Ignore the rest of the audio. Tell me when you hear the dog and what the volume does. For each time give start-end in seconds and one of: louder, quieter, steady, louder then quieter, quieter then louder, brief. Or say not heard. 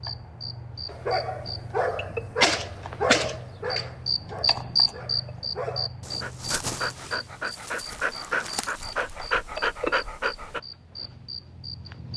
0.9-10.6 quieter then louder.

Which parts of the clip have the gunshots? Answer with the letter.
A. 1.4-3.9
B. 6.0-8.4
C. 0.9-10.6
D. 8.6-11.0
A.